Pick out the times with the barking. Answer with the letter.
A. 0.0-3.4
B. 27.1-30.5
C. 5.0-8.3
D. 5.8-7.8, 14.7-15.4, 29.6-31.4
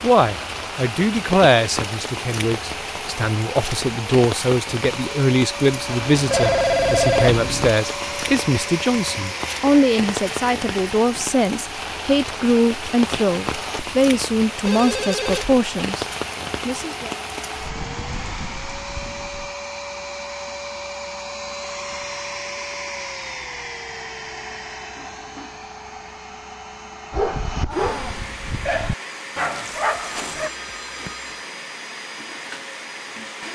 B.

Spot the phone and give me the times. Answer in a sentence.
The phone can be heard from 5.8 to 7.8 s, from 14.7 to 15.4 s and from 29.6 to 31.4 s.